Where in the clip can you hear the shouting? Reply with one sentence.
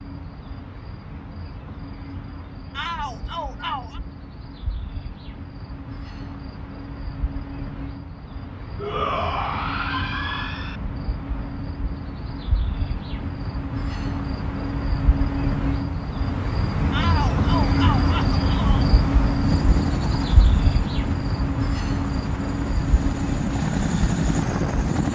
You can hear the shouting from 2.7 to 4.0 s, from 8.8 to 10.8 s and from 16.9 to 18.9 s.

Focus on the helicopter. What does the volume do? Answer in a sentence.
The loudness of the helicopter goes down, then up.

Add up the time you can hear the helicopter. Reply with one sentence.
You can hear the helicopter for 6 seconds altogether.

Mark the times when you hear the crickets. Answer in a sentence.
You can hear the crickets from 0.0 to 25.1 s.